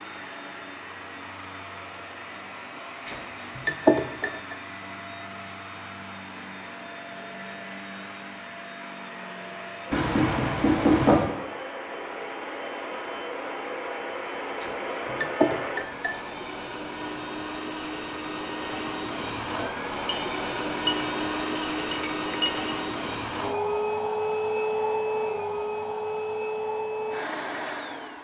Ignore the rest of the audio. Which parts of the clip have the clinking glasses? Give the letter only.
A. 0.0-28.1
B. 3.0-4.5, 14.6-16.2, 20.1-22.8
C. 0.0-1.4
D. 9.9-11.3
B.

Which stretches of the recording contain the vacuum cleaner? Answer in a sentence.
You can hear the vacuum cleaner from 0.0 to 28.1 s.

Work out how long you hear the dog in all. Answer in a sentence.
You can't hear the dog here.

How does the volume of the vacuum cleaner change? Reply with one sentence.
The loudness of the vacuum cleaner goes up.